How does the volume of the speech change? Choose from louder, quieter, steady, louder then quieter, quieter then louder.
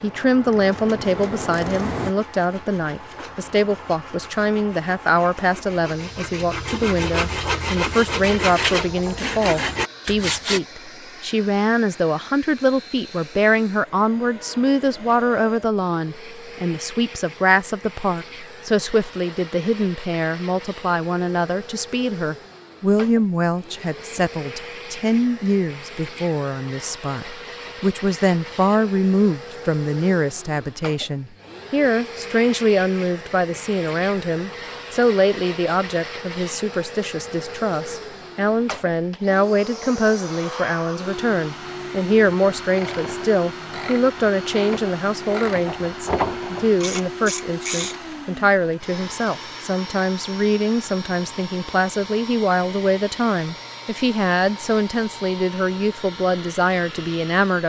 steady.